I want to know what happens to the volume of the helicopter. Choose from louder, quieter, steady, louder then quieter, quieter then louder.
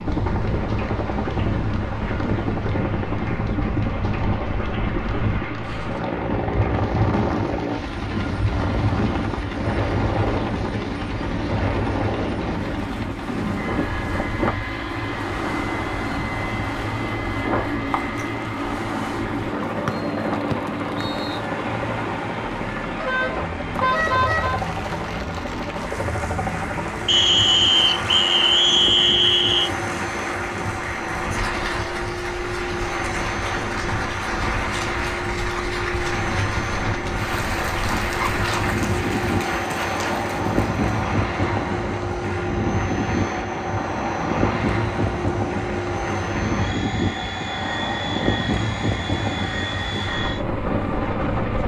steady.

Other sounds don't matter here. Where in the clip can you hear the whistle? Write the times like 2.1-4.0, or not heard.
20.5-21.4, 27.1-29.7.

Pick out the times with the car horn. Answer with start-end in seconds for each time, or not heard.
23.0-24.6.